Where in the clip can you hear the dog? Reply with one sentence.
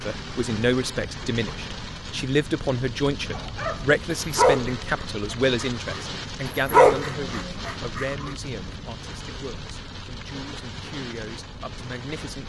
The dog can be heard from 3.4 to 8.3 s.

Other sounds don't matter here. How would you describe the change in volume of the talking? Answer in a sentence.
The loudness of the talking goes down.